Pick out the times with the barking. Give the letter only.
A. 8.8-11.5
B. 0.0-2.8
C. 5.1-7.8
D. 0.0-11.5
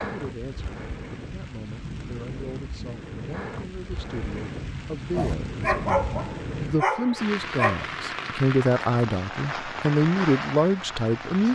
C.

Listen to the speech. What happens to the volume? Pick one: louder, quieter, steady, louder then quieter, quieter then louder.
louder.